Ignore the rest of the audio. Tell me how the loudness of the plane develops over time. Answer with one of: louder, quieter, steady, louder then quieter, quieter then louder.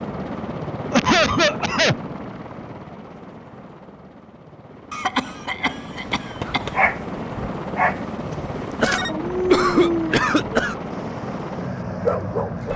quieter then louder.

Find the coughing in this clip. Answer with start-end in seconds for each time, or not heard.
0.9-1.9, 4.9-6.8, 8.8-10.8.